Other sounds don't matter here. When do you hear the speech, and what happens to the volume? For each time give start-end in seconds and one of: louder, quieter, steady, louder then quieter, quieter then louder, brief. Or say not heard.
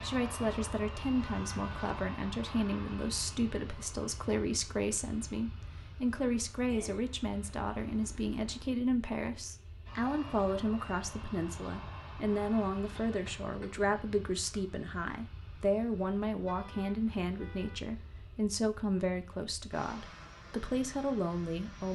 0.0-21.8 steady.